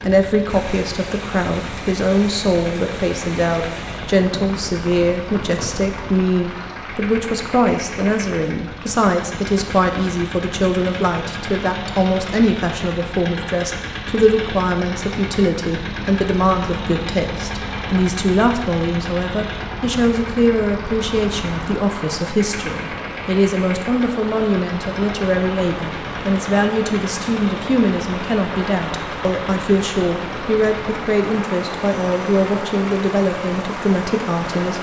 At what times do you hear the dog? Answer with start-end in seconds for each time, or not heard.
not heard.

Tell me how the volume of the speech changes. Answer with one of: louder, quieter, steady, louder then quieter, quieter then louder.
steady.